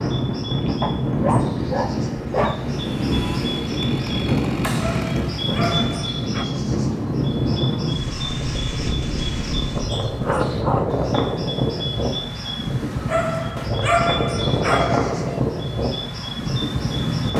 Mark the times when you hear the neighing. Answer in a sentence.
You can't hear the neighing here.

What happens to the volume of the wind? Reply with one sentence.
The loudness of the wind stays about the same.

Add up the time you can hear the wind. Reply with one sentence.
You can hear the wind for 17 seconds altogether.